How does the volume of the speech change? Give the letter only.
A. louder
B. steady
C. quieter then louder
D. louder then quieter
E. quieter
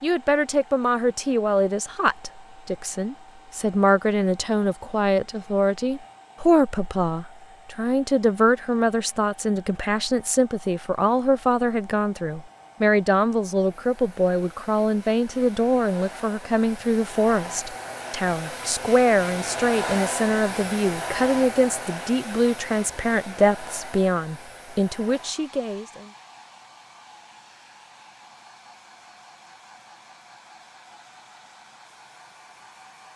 B.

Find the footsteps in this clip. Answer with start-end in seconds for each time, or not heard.
not heard.